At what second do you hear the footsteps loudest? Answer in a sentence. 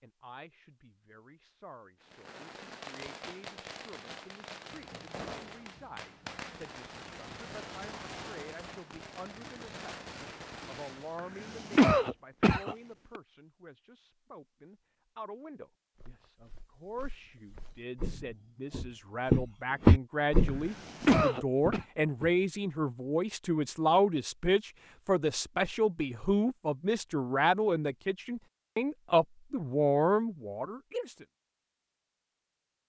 The volume of the footsteps peaks at 20 seconds.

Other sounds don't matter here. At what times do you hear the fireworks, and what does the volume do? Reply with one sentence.
You can hear the fireworks from 2.0 to 11.2 s, at a steady volume.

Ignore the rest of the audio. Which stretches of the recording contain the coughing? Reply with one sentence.
You can hear the coughing from 11.2 to 13.2 s and from 20.4 to 21.9 s.